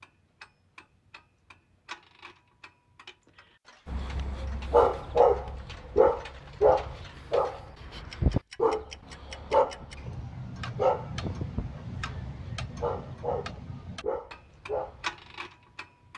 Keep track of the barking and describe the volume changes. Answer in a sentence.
The volume of the barking goes down.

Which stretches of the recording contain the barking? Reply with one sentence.
You can hear the barking from 3.9 to 15.3 s.